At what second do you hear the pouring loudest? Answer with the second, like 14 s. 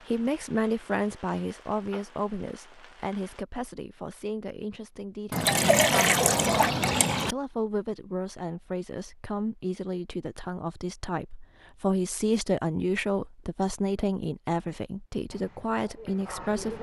6 s.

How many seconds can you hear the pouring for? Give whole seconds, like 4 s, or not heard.
2 s.